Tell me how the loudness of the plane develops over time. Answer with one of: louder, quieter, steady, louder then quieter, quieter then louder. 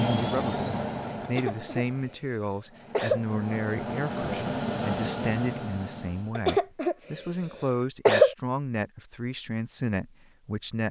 quieter then louder.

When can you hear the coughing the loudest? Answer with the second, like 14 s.
8 s.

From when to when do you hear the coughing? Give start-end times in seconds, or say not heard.
1.2-3.2, 6.3-8.3.